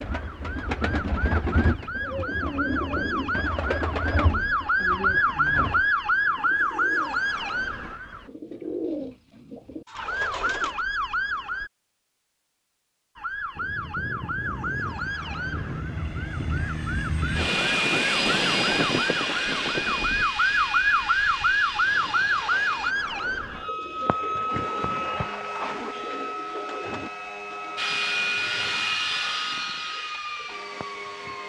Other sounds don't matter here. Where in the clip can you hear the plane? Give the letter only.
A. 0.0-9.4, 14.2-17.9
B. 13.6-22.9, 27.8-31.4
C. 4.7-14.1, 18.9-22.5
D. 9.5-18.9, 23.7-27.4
B.